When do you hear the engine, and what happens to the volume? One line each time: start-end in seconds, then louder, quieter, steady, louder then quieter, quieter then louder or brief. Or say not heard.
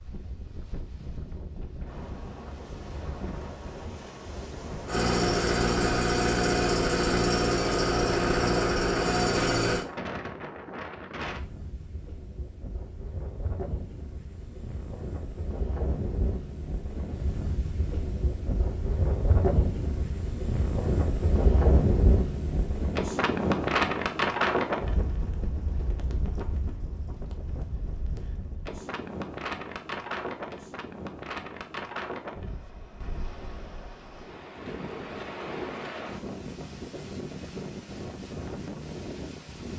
4.8-9.8 steady.